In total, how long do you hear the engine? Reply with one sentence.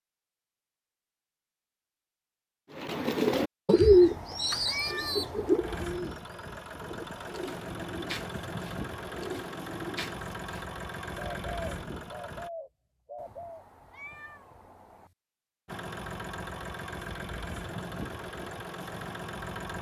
You can hear the engine for 11 seconds altogether.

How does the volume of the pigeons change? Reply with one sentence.
The volume of the pigeons goes down.